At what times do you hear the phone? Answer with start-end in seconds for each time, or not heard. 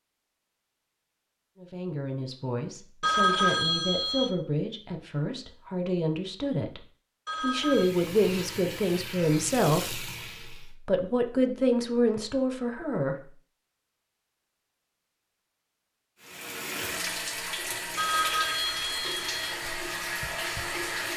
3.0-4.3, 7.2-7.9, 17.9-19.6.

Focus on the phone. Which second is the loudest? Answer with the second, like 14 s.
3 s.